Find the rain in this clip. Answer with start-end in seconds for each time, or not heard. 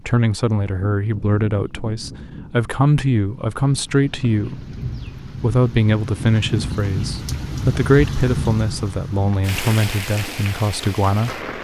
0.0-11.5.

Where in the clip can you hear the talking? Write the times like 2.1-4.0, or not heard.
0.1-4.8, 5.4-11.4.